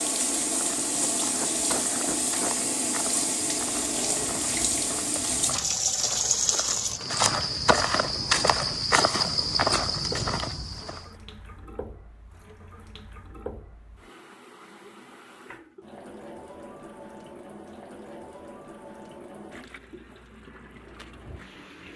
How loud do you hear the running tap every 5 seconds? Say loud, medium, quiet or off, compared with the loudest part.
loud, loud, quiet, quiet, quiet.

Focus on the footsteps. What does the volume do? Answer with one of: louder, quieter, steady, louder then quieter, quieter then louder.
louder.